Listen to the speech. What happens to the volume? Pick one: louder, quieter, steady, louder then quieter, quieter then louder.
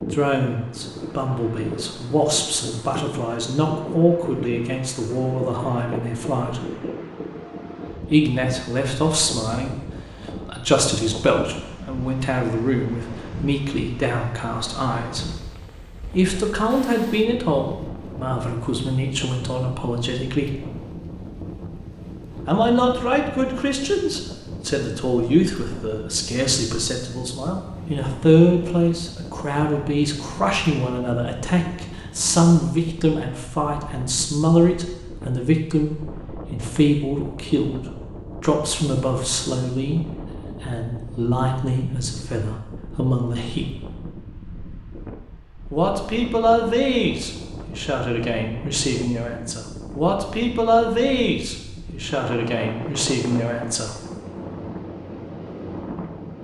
steady.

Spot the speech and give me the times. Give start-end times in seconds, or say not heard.
0.1-6.7, 8.1-15.3, 16.1-20.6, 22.4-43.7, 45.7-54.0.